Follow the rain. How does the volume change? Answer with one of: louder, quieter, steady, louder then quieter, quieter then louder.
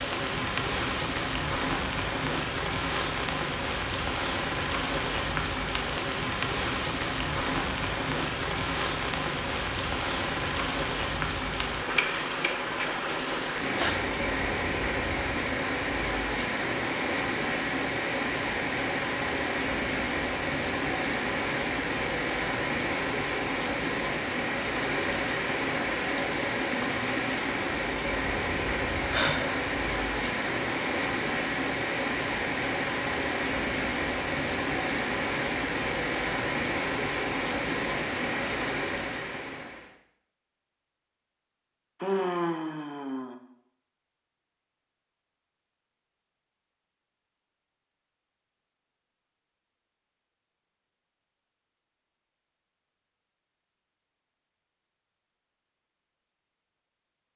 steady.